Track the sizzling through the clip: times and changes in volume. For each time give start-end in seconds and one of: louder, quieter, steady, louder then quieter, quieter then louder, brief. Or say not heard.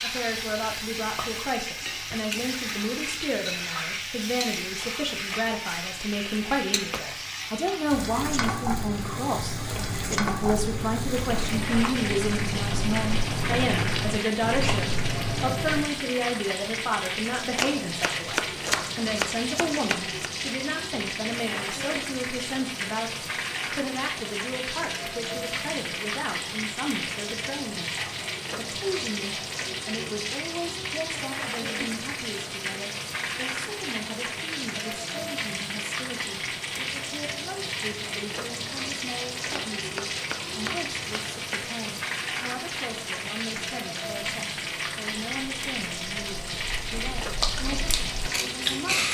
0.0-49.1 steady.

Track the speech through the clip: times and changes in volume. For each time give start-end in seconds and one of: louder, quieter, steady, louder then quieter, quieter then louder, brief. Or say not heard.
0.0-49.1 quieter.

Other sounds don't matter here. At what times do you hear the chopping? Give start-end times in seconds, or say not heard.
17.6-20.3, 39.5-41.6.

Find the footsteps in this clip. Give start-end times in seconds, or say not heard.
not heard.